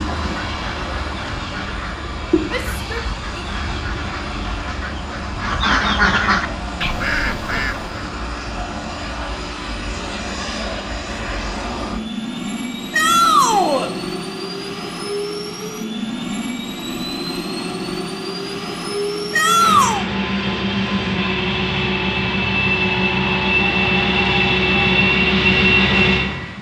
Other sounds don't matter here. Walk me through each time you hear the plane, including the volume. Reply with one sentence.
You can hear the plane from 0.0 to 26.5 s, getting louder.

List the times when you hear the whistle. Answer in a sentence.
You can't hear the whistle here.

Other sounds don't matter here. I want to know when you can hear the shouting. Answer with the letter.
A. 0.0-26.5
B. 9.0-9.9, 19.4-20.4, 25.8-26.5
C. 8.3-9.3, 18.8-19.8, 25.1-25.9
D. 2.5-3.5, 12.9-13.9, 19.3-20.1
D.